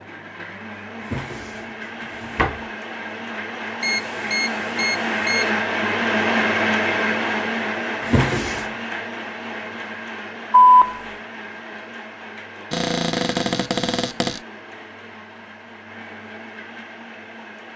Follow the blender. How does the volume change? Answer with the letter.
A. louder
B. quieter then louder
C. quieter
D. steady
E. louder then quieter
E.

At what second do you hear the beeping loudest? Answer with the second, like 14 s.
11 s.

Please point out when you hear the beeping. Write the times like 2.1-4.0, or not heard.
3.8-5.5, 10.5-11.0.